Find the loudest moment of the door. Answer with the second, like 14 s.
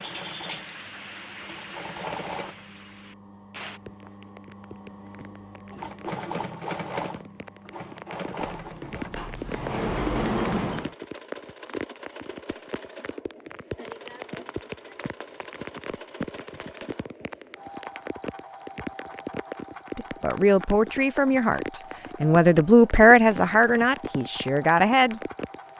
10 s.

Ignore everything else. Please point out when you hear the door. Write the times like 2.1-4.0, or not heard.
8.4-10.9.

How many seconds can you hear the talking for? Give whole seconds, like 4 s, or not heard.
5 s.